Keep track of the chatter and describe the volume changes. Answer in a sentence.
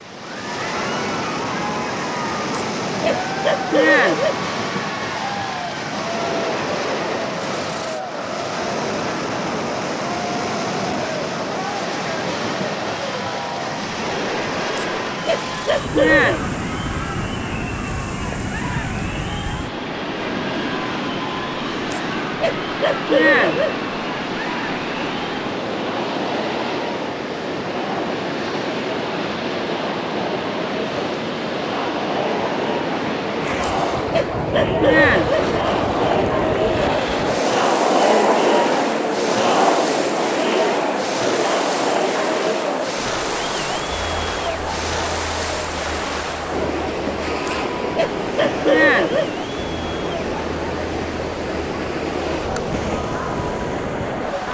The loudness of the chatter goes up, then down.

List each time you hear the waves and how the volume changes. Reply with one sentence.
The waves can be heard from 0.0 to 54.4 s, at a steady volume.